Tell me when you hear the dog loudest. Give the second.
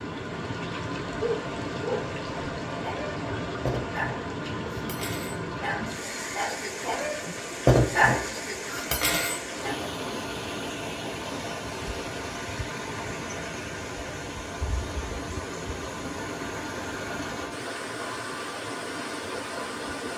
8 s.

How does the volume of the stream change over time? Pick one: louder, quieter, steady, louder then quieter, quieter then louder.
steady.